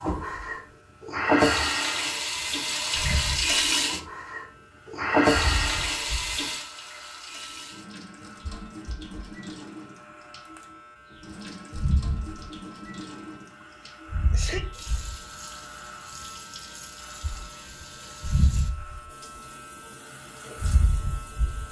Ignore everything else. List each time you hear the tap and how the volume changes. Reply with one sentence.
You can hear the tap from 0.0 to 21.6 s, getting quieter.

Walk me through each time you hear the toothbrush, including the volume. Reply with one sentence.
The toothbrush can't be heard in this clip.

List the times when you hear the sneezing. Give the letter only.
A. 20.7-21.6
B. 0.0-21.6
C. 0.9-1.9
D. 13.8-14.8
D.